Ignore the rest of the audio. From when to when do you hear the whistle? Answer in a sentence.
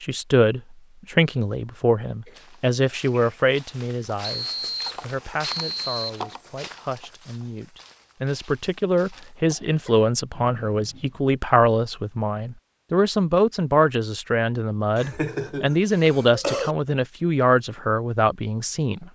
The whistle can be heard from 4.2 to 6.2 s and from 10.3 to 11.2 s.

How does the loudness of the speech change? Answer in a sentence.
The volume of the speech goes down, then up.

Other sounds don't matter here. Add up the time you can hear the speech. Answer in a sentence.
You can hear the speech for 19 seconds altogether.